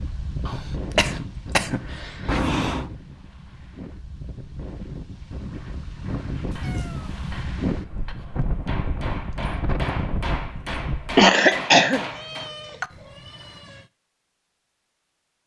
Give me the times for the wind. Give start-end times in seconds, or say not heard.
0.0-11.3.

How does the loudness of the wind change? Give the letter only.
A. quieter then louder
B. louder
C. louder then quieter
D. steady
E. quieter
A.